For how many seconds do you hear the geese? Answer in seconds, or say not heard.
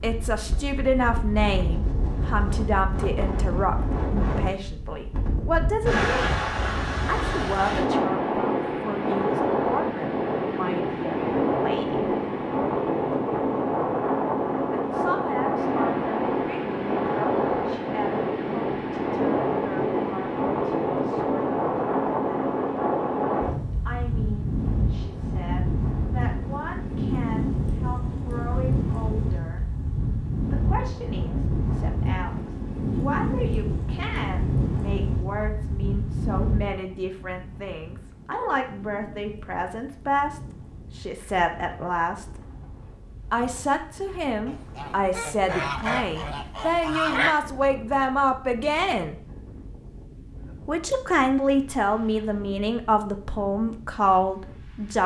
3 s.